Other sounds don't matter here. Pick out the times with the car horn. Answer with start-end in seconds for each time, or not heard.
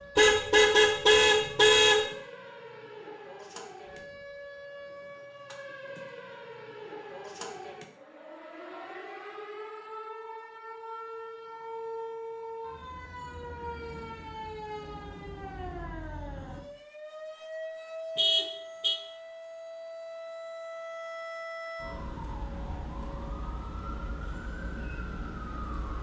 0.1-2.0, 18.1-18.9.